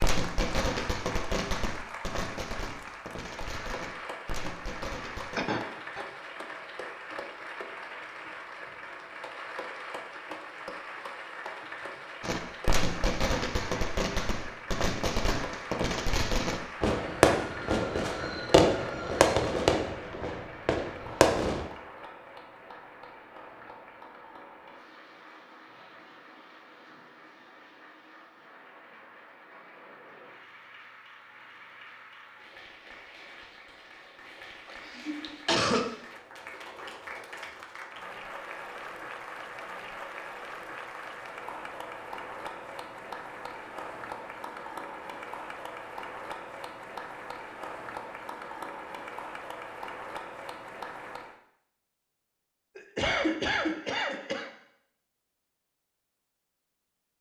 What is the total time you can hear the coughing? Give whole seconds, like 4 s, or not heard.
4 s.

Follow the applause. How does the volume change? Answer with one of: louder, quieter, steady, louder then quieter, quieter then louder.
quieter then louder.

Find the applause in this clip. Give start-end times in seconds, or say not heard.
0.1-51.4.